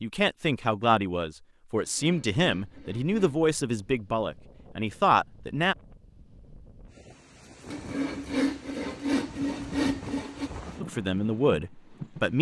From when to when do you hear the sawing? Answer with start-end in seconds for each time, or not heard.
1.8-3.4, 7.7-10.5.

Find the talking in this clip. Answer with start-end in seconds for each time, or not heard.
0.0-5.8, 10.8-12.3.